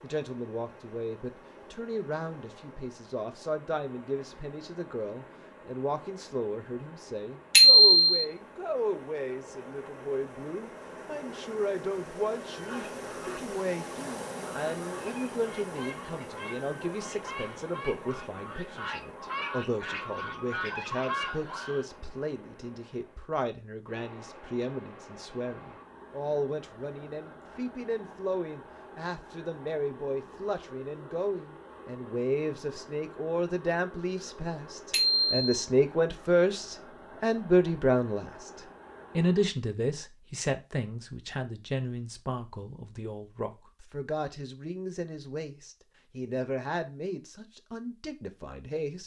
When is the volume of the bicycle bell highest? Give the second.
8 s.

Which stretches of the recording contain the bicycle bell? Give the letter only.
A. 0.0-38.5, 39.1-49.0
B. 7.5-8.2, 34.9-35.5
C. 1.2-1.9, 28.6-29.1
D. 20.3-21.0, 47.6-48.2
B.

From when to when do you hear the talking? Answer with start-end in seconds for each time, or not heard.
0.0-38.5, 39.1-49.0.